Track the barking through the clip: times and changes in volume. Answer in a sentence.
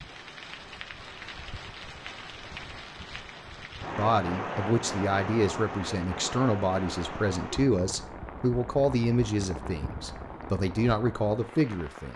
The barking can't be heard in this clip.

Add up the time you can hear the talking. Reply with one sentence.
The talking can be heard for 8 seconds in total.